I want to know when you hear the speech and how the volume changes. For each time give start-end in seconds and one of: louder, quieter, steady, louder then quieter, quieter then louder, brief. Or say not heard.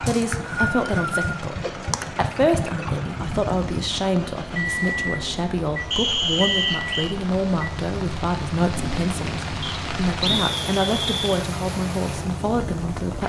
0.0-13.2 steady.